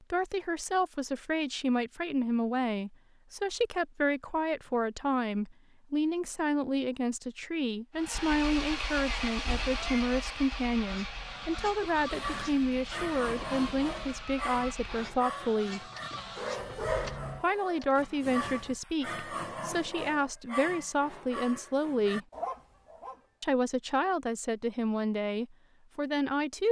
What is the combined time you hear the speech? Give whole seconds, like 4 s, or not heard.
24 s.